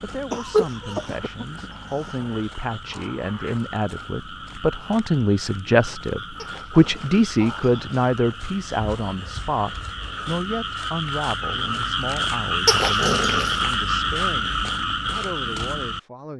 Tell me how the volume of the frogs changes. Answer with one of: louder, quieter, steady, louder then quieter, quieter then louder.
louder.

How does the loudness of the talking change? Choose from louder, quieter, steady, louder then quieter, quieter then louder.
louder then quieter.